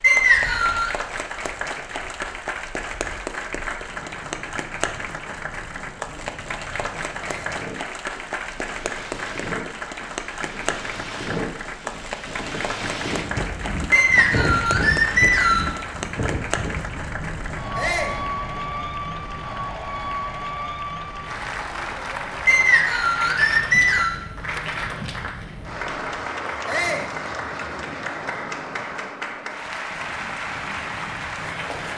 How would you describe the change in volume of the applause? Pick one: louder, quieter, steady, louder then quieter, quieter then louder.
steady.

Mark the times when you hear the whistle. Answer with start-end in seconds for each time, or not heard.
0.0-0.9, 13.9-15.7, 22.4-24.1.